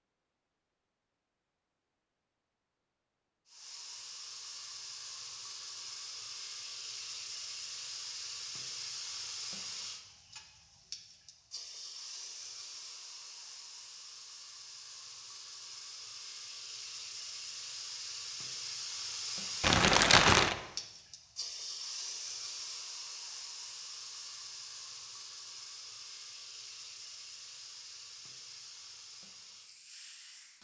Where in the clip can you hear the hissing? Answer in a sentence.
You can hear the hissing from 3.5 to 30.5 s.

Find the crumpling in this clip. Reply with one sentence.
You can hear the crumpling from 19.6 to 20.6 s.